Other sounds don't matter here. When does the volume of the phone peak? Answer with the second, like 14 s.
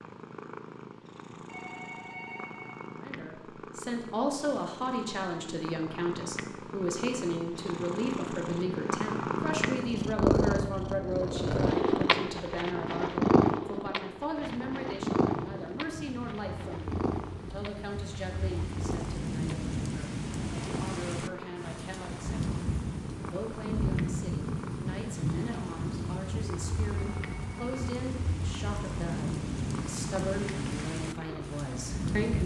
2 s.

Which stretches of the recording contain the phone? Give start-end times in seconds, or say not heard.
1.4-3.0, 26.9-27.9.